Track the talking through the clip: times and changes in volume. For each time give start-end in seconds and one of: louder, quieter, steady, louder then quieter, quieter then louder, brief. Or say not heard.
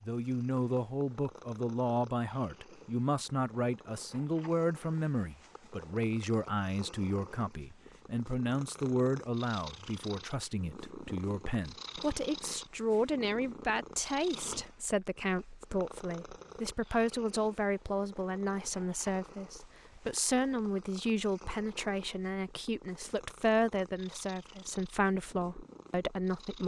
0.0-26.6 steady.